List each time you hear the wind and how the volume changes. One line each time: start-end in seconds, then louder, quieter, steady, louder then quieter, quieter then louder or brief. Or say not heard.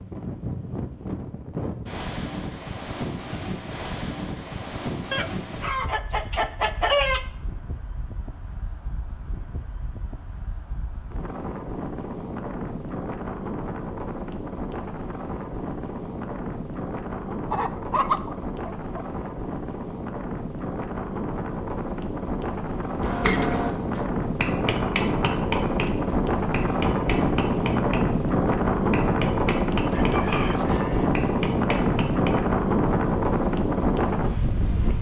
0.0-34.9 louder.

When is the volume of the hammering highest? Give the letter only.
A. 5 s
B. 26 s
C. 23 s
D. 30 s
C.